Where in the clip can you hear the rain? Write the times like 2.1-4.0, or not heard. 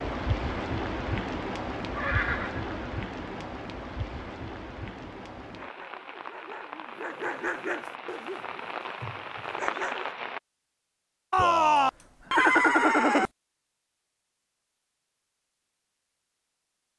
0.0-10.4.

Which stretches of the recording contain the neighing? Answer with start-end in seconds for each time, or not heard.
1.9-3.5, 11.3-13.3.